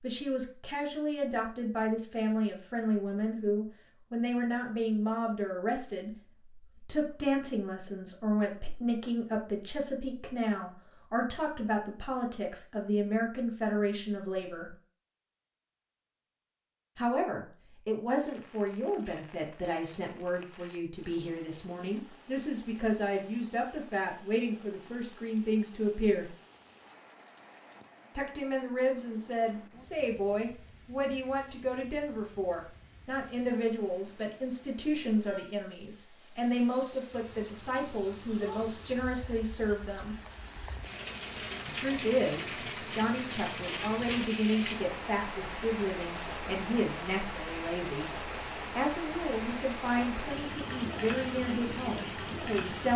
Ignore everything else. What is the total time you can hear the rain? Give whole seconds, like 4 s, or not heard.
35 s.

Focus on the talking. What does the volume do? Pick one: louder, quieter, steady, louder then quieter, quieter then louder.
steady.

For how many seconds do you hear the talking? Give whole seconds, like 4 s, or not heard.
47 s.